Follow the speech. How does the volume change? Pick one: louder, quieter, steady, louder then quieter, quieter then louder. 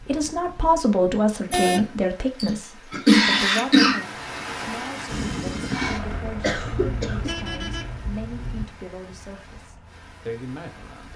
quieter.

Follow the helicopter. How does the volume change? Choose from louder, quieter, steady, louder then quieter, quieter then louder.
quieter.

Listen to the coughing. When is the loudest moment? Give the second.
3 s.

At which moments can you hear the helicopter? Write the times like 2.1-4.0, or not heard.
5.0-11.1.